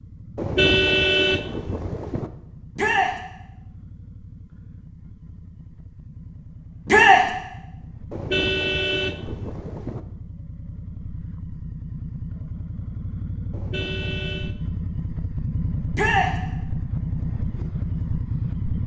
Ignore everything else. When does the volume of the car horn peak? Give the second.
1 s.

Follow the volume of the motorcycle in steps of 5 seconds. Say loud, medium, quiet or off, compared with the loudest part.
quiet, quiet, medium, loud.